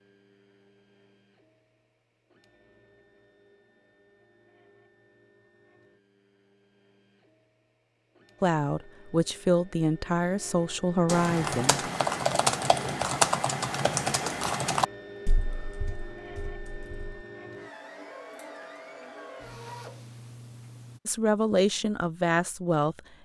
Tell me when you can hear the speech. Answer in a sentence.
The speech can be heard from 8.4 to 11.8 s and from 21.1 to 23.0 s.